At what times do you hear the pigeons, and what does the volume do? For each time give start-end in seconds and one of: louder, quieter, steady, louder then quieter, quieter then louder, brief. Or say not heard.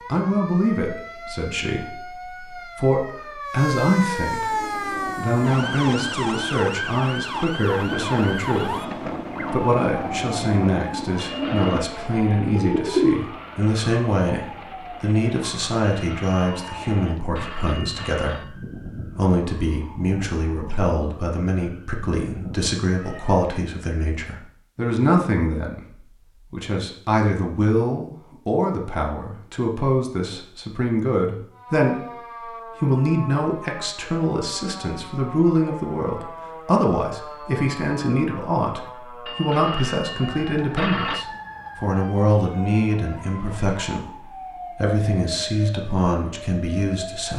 4.5-13.2 louder.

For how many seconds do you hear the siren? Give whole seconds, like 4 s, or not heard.
39 s.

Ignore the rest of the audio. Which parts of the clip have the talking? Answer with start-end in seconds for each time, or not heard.
0.1-47.3.